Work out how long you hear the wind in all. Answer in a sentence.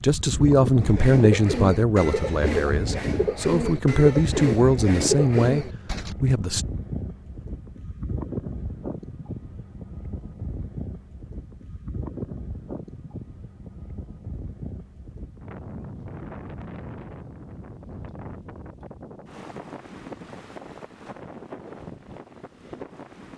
The wind can be heard for 23 seconds in total.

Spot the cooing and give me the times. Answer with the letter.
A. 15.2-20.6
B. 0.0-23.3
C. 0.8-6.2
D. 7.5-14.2
C.